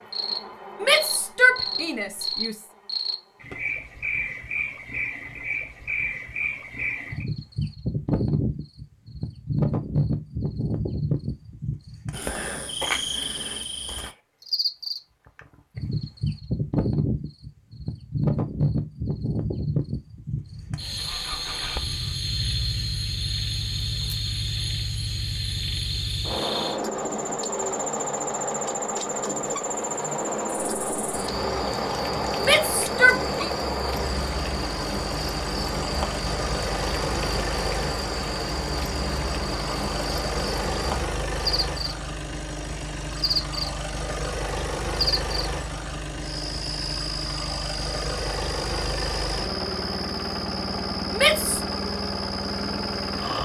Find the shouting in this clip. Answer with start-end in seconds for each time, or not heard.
0.8-2.5, 32.4-33.5, 51.1-51.6.